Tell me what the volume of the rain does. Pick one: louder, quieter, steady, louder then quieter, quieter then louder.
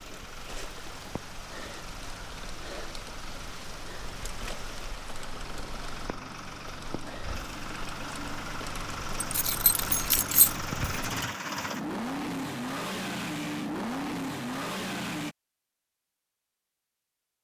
steady.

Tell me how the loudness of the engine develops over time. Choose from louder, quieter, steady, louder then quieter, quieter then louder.
louder.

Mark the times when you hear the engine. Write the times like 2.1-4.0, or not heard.
0.0-15.3.